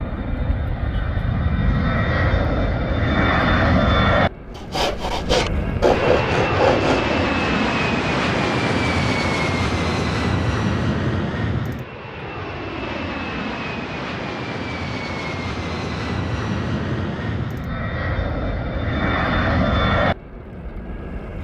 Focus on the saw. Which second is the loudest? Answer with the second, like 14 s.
6 s.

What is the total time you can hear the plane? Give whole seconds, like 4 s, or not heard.
21 s.